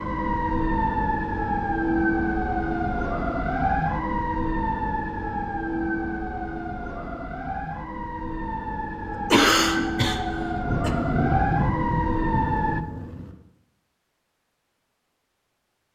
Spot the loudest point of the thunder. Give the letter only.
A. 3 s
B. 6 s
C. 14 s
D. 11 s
D.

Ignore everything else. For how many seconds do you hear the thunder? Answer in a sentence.
You can hear the thunder for 3 seconds altogether.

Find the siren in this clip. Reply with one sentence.
You can hear the siren from 0.0 to 12.8 s.